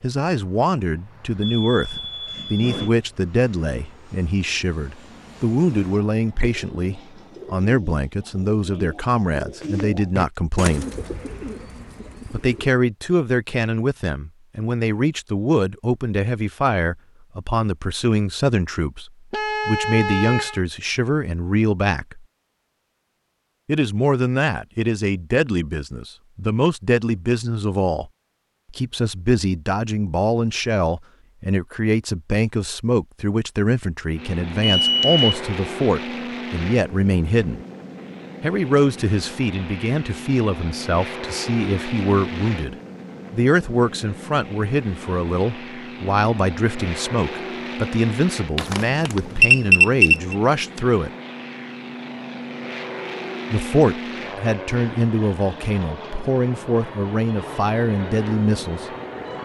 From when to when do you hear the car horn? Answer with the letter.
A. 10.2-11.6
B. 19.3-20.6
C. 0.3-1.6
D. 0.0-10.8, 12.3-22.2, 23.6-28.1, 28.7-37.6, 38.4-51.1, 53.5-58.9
B.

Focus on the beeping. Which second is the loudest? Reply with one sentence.
The loudest moment of the beeping is at 50 seconds.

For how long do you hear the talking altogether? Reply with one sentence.
The talking can be heard for 52 seconds in total.